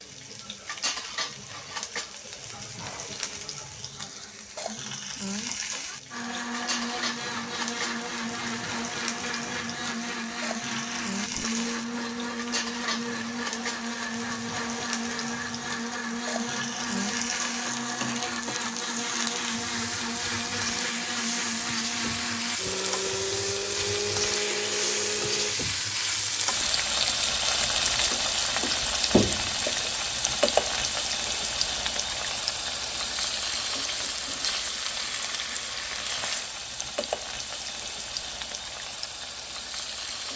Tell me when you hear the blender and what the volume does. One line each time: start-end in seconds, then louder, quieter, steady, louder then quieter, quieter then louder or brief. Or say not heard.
6.1-25.6 steady.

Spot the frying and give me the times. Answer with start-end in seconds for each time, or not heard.
0.0-40.3.